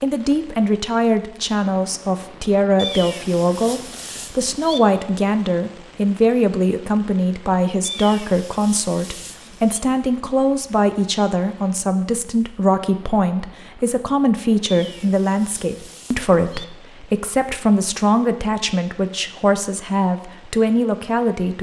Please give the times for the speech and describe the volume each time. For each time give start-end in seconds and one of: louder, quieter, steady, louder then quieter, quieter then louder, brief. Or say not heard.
0.0-21.5 steady.